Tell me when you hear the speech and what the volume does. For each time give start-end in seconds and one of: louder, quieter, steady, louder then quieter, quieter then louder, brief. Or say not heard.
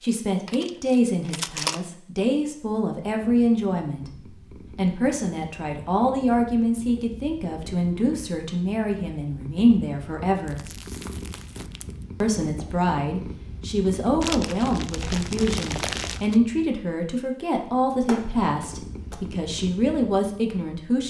0.0-10.7 steady
12.2-21.0 steady.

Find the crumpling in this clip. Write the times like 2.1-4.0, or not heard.
0.5-1.8, 10.4-12.1, 14.2-16.4.